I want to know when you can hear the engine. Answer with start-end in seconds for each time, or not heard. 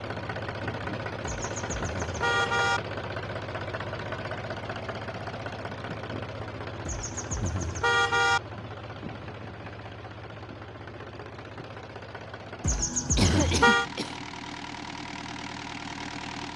0.0-16.5.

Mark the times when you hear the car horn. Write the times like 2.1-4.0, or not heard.
1.2-2.8, 6.8-8.4, 12.6-13.8.